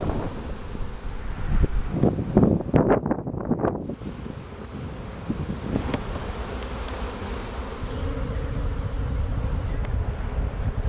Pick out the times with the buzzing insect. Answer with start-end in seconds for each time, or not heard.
0.0-2.4, 3.8-10.8.